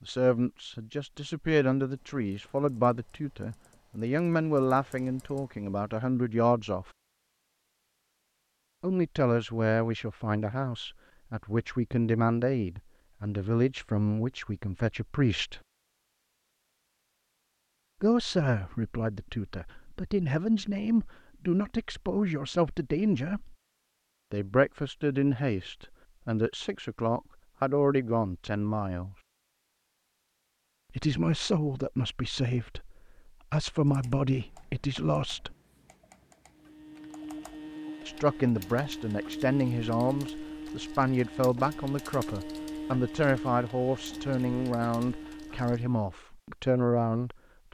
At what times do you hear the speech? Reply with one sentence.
The speech can be heard from 0.0 to 6.9 s, from 8.8 to 15.6 s, from 18.0 to 23.6 s, from 24.3 to 29.1 s, from 30.9 to 35.5 s and from 38.0 to 47.4 s.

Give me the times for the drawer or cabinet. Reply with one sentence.
You can't hear the drawer or cabinet here.